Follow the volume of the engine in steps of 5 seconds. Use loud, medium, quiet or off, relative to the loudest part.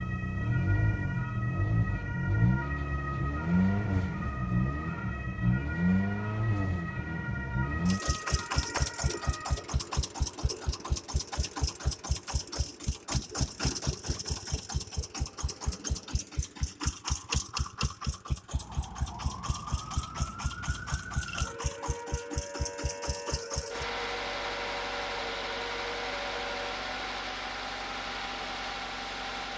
loud, loud, medium, medium, medium, medium.